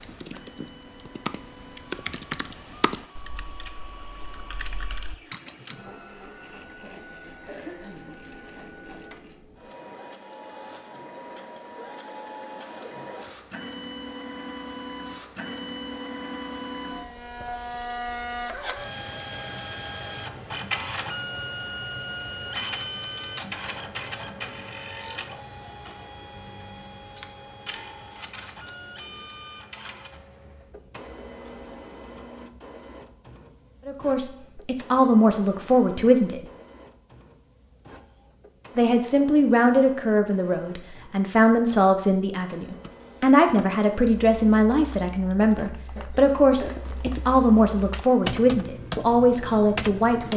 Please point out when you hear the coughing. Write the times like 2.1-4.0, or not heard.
6.8-8.2, 46.0-46.8.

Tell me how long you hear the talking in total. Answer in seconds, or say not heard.
14 s.